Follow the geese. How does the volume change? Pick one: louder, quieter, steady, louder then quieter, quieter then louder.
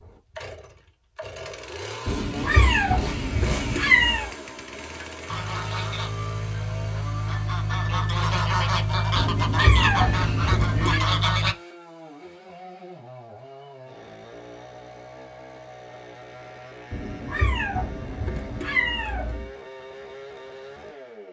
louder.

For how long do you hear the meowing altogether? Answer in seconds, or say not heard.
7 s.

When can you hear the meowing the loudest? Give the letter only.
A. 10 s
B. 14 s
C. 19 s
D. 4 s
D.